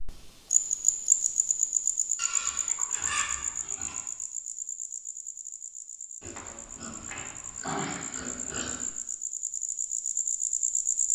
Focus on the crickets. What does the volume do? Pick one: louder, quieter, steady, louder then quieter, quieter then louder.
quieter then louder.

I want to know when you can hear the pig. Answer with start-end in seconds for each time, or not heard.
2.1-4.0, 6.2-8.9.